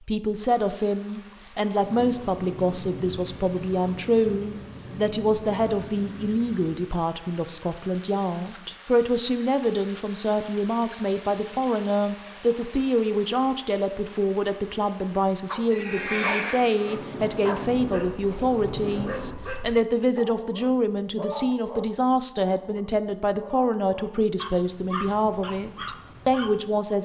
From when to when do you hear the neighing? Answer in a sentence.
The neighing can be heard from 15.7 to 16.8 s.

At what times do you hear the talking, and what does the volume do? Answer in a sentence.
You can hear the talking from 0.1 to 27.0 s, at a steady volume.